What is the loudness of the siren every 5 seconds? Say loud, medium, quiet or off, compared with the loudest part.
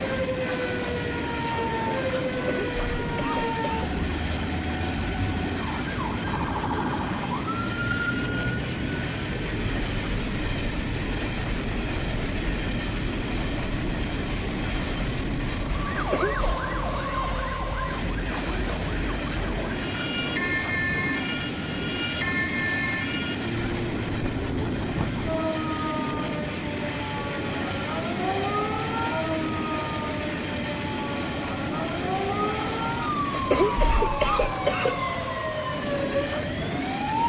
loud, loud, medium, medium, loud, loud, loud, loud.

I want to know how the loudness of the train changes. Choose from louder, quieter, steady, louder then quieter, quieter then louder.
steady.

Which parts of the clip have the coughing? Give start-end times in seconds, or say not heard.
2.3-3.9, 15.9-16.5, 33.3-35.0.